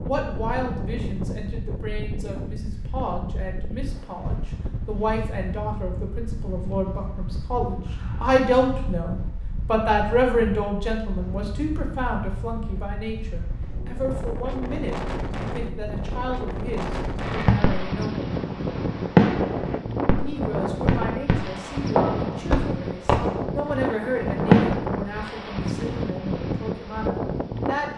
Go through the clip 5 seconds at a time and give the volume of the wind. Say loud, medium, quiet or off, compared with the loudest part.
medium, medium, medium, loud, loud, loud.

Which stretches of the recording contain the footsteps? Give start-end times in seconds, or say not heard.
not heard.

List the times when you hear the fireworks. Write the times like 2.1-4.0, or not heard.
17.2-24.8.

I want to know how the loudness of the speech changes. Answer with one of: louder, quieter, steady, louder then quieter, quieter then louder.
louder then quieter.